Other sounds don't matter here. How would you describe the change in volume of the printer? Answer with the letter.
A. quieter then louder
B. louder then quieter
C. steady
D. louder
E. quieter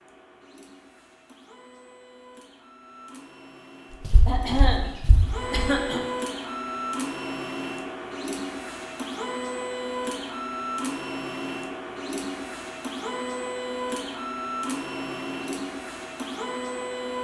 D.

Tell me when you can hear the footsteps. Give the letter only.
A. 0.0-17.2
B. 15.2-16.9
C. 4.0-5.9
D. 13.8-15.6
C.